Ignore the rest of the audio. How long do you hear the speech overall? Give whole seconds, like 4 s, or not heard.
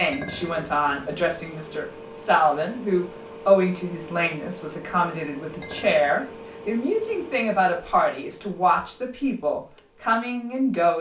11 s.